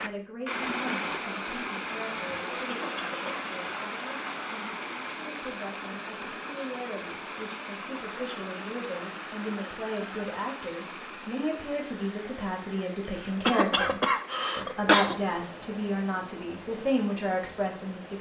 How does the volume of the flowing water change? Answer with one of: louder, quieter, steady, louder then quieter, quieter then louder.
quieter.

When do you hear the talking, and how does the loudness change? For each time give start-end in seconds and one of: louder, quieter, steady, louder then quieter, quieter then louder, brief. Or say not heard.
0.0-18.1 louder.